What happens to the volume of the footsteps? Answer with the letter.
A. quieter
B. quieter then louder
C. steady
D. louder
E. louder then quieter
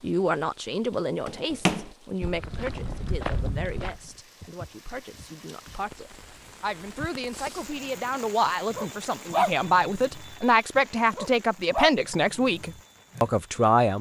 A.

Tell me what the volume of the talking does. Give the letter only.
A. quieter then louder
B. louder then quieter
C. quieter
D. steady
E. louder
A.